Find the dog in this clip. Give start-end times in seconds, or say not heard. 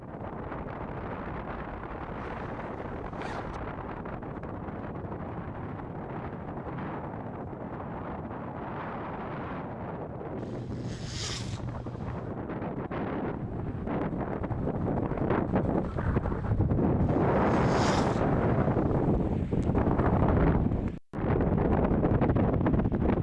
not heard.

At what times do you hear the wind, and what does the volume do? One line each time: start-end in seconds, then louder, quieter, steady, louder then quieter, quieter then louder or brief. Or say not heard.
0.0-23.1 louder.